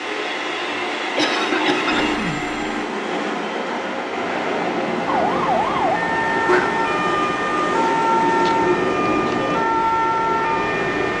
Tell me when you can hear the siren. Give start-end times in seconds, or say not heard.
5.0-11.1.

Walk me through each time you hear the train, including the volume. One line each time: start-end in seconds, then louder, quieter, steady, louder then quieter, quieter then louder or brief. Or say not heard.
0.0-11.1 steady.